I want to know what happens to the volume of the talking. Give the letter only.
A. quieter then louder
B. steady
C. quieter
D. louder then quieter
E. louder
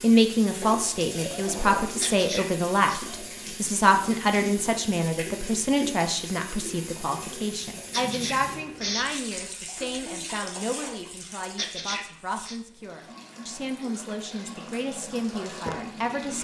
C.